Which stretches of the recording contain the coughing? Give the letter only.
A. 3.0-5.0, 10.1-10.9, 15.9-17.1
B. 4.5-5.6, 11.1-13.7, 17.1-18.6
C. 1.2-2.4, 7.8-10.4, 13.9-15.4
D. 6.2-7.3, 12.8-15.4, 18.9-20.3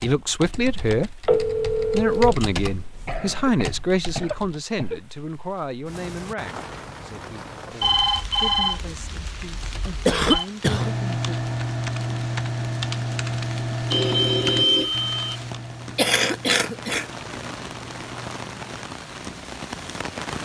A.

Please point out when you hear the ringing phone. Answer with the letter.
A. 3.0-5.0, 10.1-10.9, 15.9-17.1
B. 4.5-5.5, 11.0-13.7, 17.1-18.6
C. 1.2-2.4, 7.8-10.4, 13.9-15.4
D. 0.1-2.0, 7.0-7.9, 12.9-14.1
C.